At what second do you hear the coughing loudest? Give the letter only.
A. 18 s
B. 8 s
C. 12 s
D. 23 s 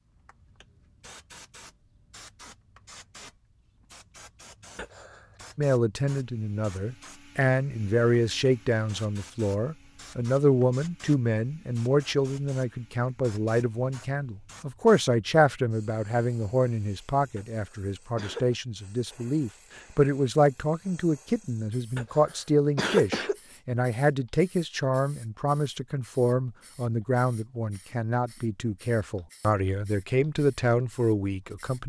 D.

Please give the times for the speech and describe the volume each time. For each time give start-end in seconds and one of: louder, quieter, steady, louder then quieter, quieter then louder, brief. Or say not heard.
5.5-31.8 steady.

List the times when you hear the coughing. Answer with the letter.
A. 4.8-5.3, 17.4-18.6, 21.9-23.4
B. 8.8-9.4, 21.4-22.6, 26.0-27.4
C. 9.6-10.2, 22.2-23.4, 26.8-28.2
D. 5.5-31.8
A.